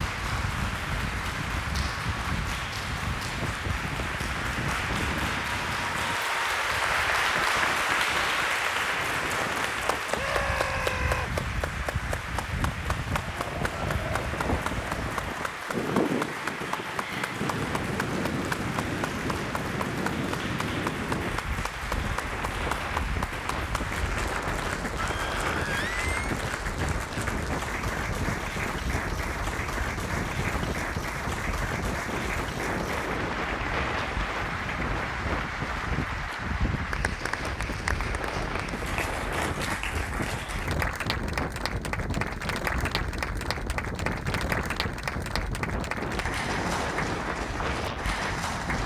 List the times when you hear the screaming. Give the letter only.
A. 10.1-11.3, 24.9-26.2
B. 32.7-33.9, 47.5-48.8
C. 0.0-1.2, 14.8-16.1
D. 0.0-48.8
A.